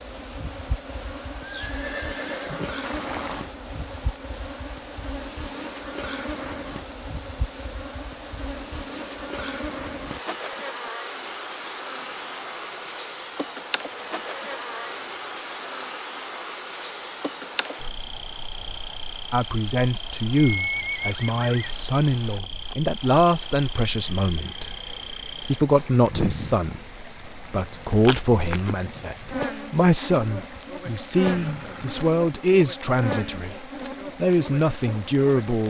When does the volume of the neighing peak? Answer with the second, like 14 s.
21 s.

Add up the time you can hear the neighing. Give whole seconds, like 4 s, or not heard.
4 s.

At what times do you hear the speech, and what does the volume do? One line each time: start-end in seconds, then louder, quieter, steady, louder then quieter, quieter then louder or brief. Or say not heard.
19.3-35.6 steady.